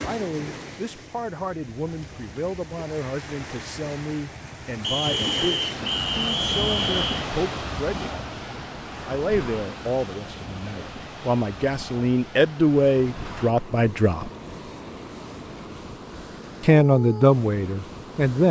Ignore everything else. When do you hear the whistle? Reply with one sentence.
The whistle can be heard from 4.8 to 7.2 s.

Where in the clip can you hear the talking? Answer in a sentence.
The talking can be heard from 0.0 to 8.2 s, from 9.1 to 14.3 s and from 16.6 to 18.4 s.